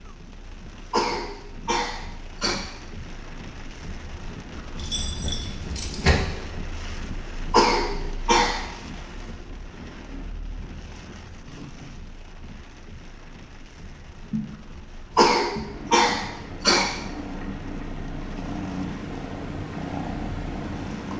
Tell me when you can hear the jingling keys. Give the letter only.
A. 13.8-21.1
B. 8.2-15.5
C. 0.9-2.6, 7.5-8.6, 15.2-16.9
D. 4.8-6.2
D.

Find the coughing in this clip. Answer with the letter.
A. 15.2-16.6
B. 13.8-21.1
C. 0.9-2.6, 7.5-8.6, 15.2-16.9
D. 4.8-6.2
C.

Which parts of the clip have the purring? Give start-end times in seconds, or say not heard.
13.8-21.1.